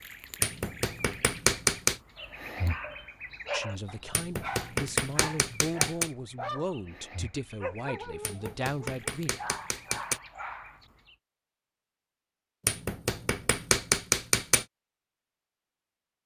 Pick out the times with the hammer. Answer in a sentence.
The hammer can be heard from 0.4 to 2.0 s, from 4.1 to 6.1 s, from 8.2 to 10.2 s and from 12.7 to 14.7 s.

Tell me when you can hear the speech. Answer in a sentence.
You can hear the speech from 3.5 to 9.3 s.